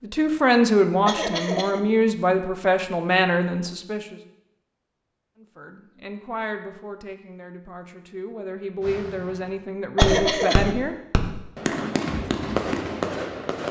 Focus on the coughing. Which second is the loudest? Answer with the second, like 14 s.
10 s.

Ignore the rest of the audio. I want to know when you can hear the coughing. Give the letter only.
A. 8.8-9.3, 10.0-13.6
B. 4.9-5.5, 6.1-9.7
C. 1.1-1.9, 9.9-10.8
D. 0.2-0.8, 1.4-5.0
C.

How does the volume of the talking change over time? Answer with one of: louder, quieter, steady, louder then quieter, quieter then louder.
quieter then louder.